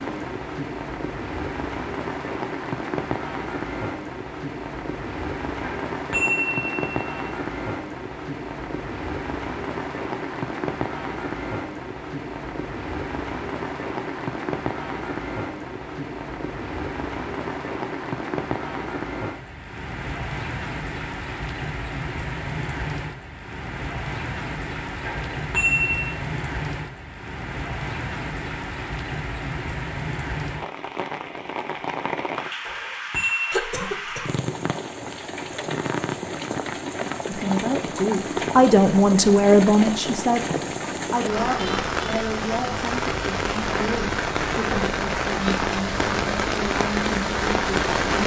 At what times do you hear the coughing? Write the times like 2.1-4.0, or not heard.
33.5-34.3.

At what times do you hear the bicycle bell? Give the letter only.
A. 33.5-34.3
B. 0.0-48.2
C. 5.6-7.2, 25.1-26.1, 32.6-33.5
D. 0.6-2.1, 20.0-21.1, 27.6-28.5
C.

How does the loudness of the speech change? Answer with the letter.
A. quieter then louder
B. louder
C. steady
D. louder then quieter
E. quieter
E.